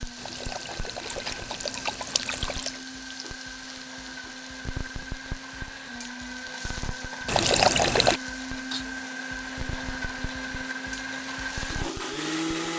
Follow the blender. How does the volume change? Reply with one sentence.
The loudness of the blender goes up.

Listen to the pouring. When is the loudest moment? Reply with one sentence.
The volume of the pouring peaks at 8 seconds.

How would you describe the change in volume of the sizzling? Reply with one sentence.
The volume of the sizzling stays about the same.